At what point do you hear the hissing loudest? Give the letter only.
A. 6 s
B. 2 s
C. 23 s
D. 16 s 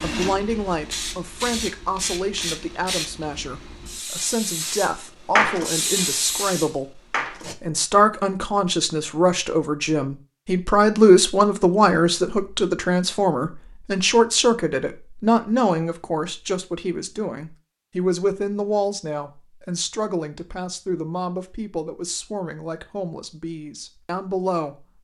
A.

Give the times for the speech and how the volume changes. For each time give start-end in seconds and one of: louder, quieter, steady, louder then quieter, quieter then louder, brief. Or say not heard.
0.0-24.9 louder then quieter.